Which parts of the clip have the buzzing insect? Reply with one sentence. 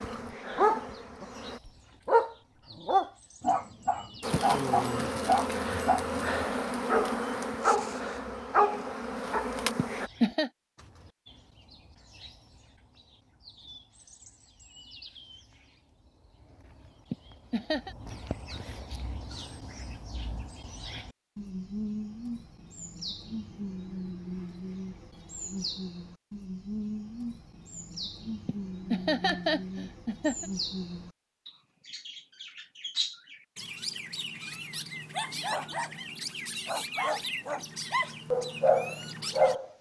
You can hear the buzzing insect from 0.0 to 1.6 s and from 4.2 to 10.1 s.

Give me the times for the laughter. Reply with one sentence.
You can hear the laughter from 9.8 to 10.5 s, from 17.1 to 17.9 s and from 28.4 to 30.4 s.